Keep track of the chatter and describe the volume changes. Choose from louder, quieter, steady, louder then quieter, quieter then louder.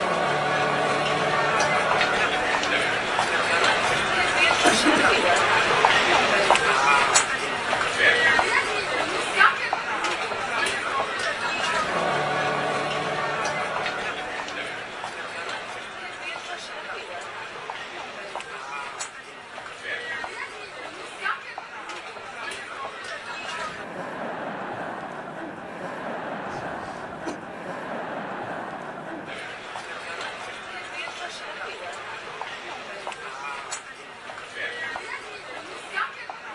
quieter.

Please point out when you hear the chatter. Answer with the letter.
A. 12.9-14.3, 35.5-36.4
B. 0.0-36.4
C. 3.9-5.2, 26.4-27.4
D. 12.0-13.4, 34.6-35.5
B.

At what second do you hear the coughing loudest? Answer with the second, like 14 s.
5 s.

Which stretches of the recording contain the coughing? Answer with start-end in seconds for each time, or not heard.
3.9-5.2, 26.4-27.4.